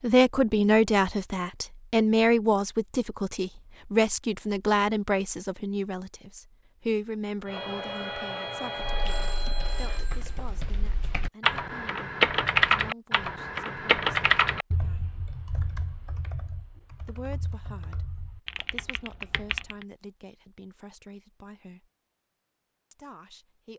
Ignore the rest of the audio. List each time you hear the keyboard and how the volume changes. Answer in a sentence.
The keyboard can be heard from 8.8 to 19.9 s, getting louder then quieter.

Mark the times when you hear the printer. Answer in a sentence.
The printer can be heard from 7.5 to 10.0 s.